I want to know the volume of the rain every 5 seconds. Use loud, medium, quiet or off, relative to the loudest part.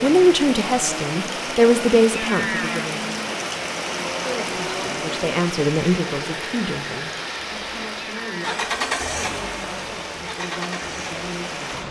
loud, medium, medium.